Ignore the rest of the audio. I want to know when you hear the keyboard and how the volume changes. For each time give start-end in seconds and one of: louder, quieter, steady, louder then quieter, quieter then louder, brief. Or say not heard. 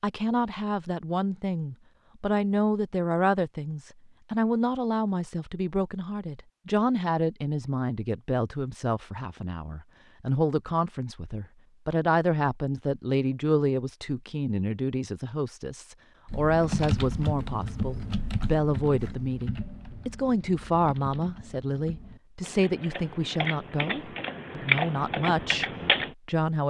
16.2-26.1 quieter then louder.